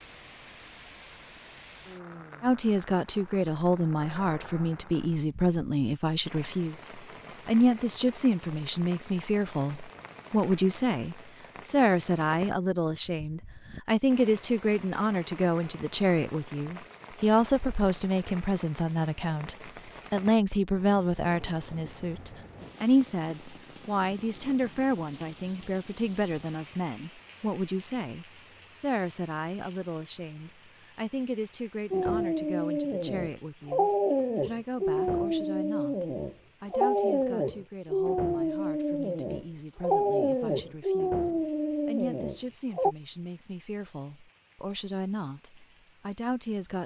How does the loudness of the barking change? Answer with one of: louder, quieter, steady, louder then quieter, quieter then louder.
steady.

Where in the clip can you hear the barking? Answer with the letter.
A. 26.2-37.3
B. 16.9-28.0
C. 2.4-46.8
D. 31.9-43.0
D.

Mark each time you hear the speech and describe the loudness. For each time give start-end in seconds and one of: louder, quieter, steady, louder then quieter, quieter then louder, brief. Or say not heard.
2.4-46.8 quieter.